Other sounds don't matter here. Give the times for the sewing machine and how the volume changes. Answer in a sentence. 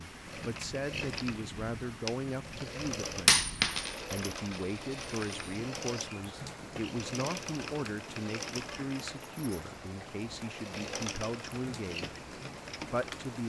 The sewing machine can be heard from 0.2 to 13.3 s, at a steady volume.